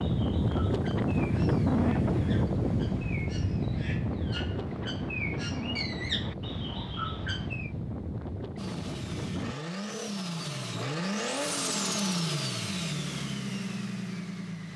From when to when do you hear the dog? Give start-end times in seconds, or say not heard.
not heard.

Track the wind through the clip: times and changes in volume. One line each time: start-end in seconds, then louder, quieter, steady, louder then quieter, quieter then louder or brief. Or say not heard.
0.0-9.6 quieter.